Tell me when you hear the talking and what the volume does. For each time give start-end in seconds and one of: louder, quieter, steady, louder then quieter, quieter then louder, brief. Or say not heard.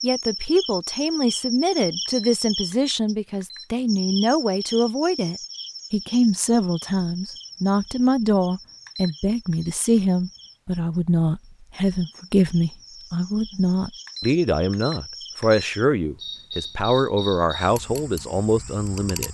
0.0-19.2 steady.